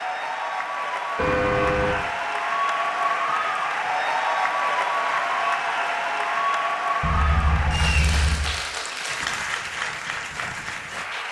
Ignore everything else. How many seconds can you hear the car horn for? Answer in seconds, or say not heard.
2 s.